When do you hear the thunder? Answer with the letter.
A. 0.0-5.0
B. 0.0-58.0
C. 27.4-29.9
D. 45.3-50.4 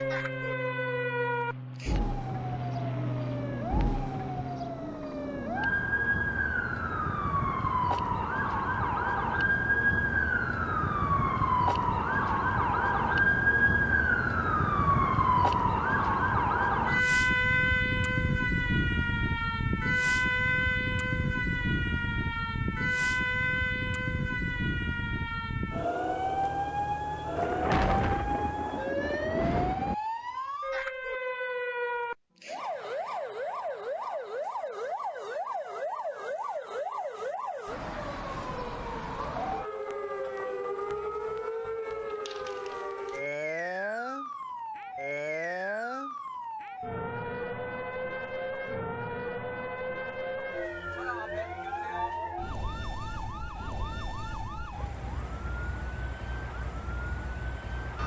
C.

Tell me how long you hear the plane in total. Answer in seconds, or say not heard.
5 s.